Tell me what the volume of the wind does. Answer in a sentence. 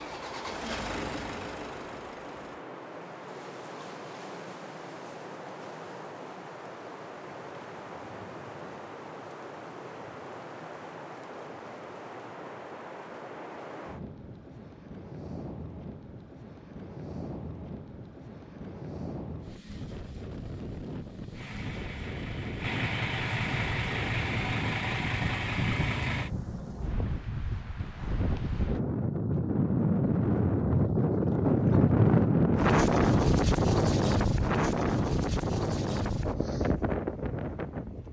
The loudness of the wind goes up.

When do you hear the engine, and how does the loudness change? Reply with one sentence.
The engine can be heard briefly from 0.0 to 2.6 s; and from 21.3 to 26.3 s, getting louder.